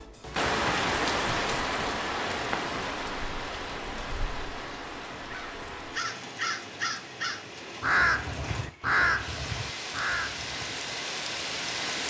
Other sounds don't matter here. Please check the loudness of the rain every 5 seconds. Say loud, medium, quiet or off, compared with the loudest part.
loud, medium, loud.